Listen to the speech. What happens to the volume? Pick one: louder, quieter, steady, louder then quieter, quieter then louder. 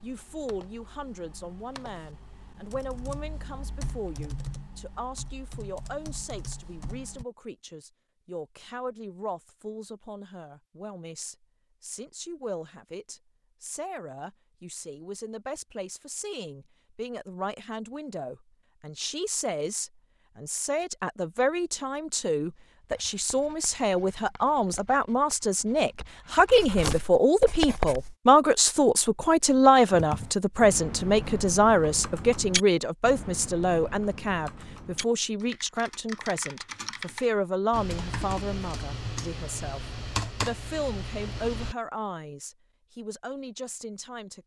louder then quieter.